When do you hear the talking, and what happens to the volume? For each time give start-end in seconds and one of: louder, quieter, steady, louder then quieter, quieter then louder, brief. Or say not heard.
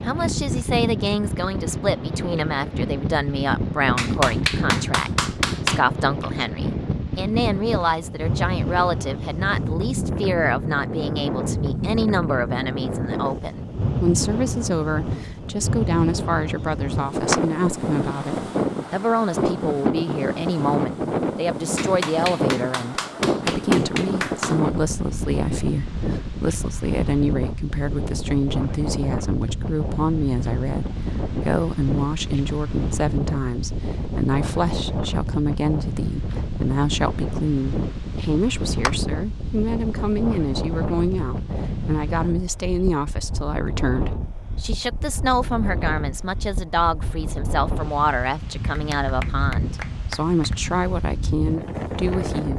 0.1-52.5 steady.